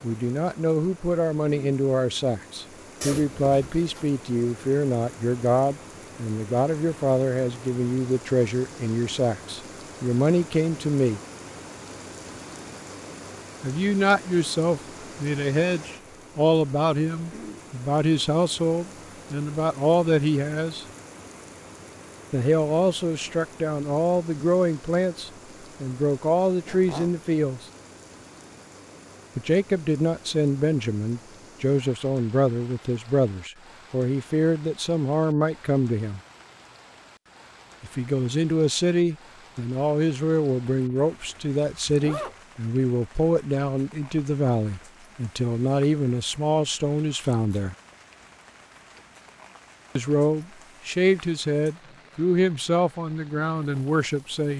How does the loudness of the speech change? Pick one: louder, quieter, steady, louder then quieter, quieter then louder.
steady.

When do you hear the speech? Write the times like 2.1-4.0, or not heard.
0.0-11.2, 13.6-20.9, 22.3-27.6, 29.4-36.2, 37.8-47.8, 50.0-54.5.